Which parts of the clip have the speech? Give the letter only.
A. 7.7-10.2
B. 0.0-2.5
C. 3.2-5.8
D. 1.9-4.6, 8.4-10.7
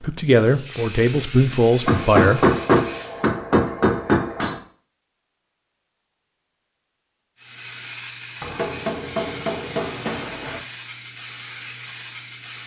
B.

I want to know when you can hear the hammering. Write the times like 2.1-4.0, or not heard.
1.9-4.6, 8.4-10.7.